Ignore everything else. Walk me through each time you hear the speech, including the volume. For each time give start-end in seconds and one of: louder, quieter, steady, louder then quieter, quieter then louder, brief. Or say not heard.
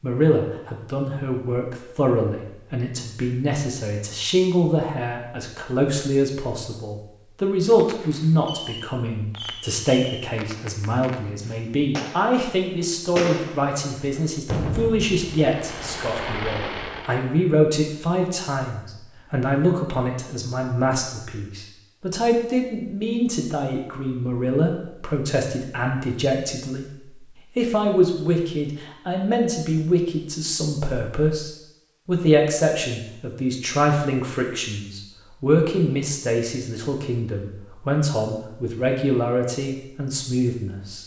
0.0-41.0 steady.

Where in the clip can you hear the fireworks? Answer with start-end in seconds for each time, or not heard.
7.7-17.3.